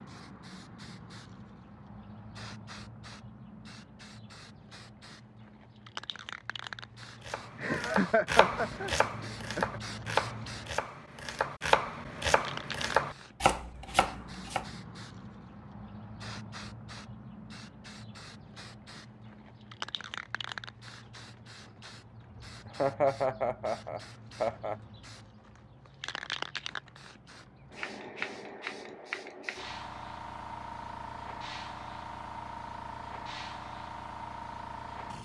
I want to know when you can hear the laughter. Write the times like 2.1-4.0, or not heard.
7.5-9.8, 22.6-24.8.